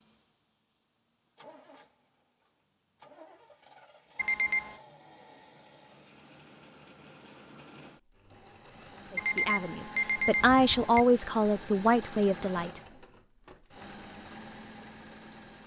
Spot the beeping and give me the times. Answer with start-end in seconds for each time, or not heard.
4.2-4.8, 9.2-11.0.